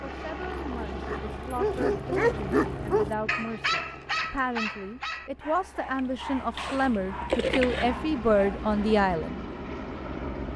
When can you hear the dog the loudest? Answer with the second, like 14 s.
2 s.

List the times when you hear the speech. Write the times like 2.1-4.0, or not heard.
0.1-9.4.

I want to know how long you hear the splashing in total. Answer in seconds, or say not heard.
2 s.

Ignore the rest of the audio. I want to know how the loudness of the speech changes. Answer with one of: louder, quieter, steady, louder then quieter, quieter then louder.
louder.